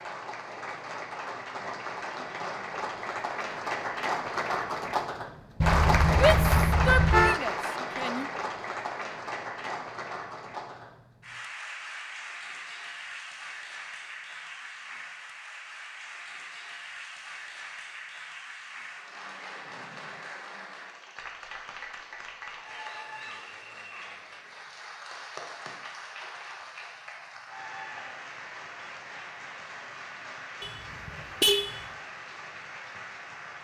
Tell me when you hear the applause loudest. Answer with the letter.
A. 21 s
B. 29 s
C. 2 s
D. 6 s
D.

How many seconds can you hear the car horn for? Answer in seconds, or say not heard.
3 s.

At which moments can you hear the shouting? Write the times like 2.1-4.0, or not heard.
6.1-8.2.